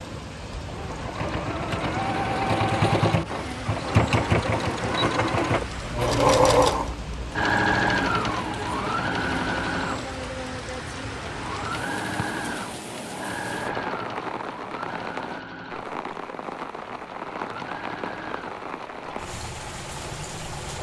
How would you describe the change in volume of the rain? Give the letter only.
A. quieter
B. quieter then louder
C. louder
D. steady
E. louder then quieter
D.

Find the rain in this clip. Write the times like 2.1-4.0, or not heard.
0.0-20.7.